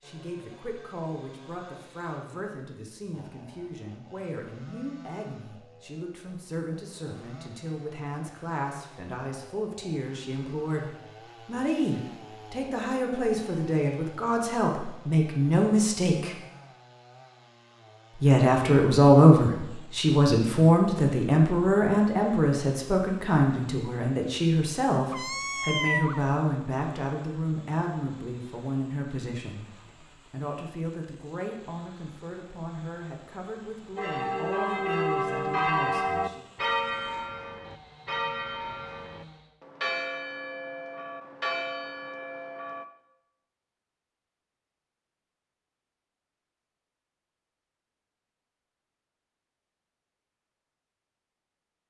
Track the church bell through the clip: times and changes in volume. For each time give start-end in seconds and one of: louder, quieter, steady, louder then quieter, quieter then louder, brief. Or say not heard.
34.0-42.9 quieter.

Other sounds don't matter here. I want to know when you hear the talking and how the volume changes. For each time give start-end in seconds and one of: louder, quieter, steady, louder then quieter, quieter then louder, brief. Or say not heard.
0.0-16.4 louder
18.1-36.5 quieter.